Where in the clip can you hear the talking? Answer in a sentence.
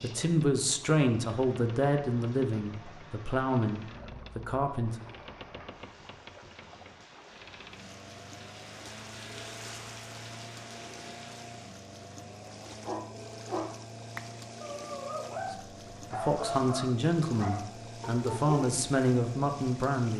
The talking can be heard from 0.0 to 5.0 s and from 15.5 to 20.1 s.